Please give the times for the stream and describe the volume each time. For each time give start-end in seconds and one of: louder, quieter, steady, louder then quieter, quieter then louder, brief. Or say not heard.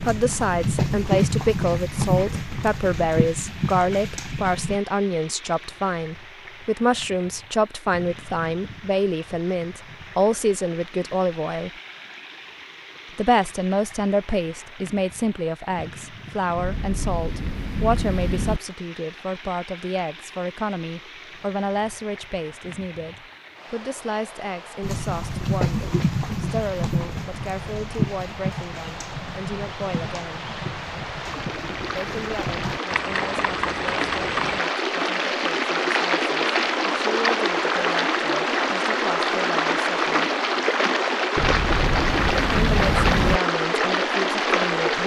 0.0-45.0 louder.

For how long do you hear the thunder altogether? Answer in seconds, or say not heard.
4 s.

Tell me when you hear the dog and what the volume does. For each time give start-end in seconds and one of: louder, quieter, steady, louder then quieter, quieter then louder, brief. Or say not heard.
not heard.